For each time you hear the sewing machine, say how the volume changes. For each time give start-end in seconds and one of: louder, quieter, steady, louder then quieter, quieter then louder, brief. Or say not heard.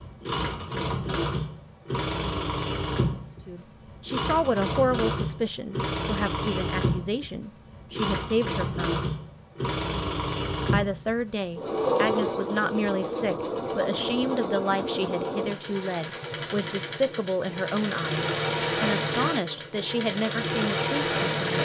0.0-21.5 steady.